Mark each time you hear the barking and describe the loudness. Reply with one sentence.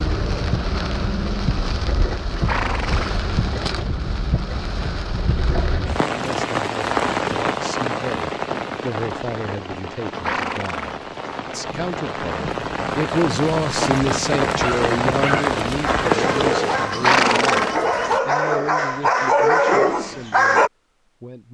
The barking can be heard from 14.6 to 20.7 s, getting louder.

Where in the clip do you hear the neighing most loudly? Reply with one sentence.
The loudest moment of the neighing is at 17 seconds.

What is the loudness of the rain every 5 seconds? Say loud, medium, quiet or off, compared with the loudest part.
medium, loud, loud, loud, off.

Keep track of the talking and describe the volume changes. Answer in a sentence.
The volume of the talking goes up, then down.